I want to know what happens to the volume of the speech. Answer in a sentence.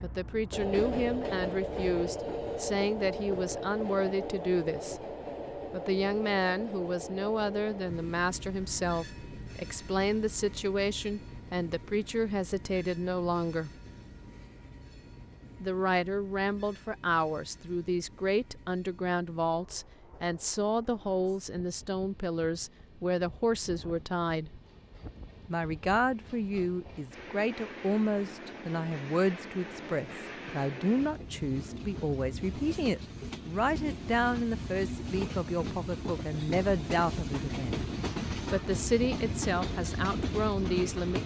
The volume of the speech stays about the same.